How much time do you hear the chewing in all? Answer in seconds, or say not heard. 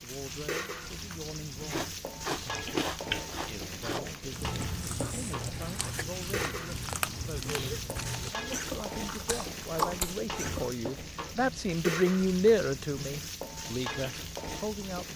9 s.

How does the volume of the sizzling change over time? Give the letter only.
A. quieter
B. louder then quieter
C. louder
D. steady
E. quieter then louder
D.